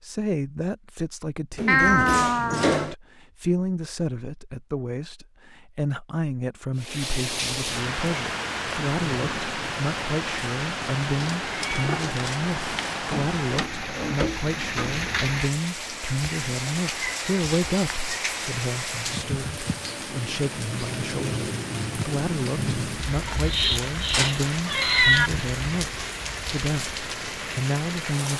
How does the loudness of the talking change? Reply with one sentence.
The loudness of the talking stays about the same.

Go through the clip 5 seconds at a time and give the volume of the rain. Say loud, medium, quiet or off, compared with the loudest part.
off, loud, loud, loud, loud, loud.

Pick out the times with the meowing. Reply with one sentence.
The meowing can be heard from 1.6 to 2.9 s, from 11.4 to 12.9 s and from 23.2 to 25.3 s.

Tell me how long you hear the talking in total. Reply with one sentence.
You can hear the talking for 28 seconds altogether.